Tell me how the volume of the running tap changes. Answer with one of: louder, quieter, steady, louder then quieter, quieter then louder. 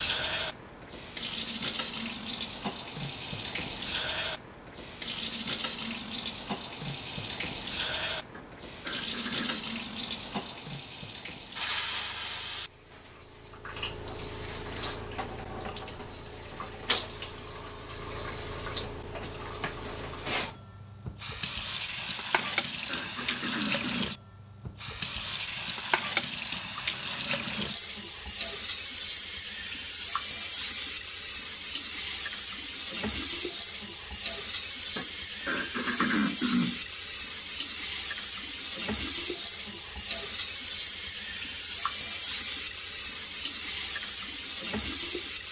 steady.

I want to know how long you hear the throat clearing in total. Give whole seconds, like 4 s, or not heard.
5 s.